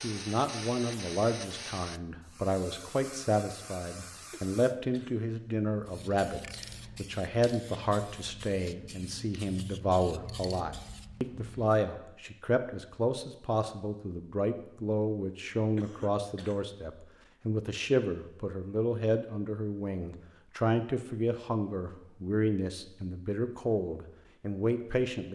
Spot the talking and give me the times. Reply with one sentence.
You can hear the talking from 0.0 to 25.3 s.